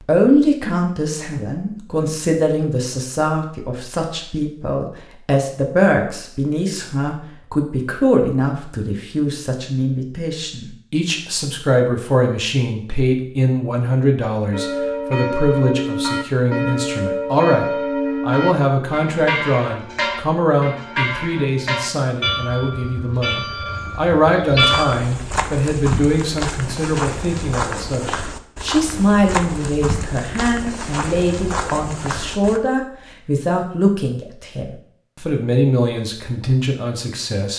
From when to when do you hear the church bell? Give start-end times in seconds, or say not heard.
14.5-24.9.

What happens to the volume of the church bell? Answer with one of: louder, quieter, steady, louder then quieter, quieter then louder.
quieter.